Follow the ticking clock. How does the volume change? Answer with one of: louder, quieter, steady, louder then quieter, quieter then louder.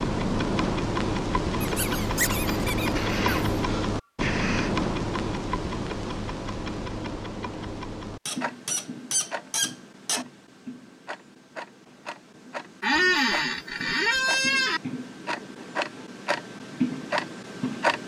quieter then louder.